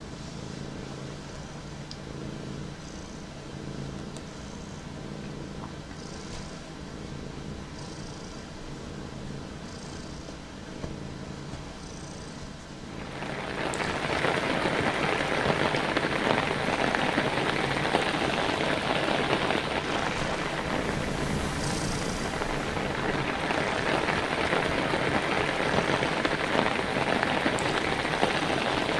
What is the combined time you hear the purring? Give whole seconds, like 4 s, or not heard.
29 s.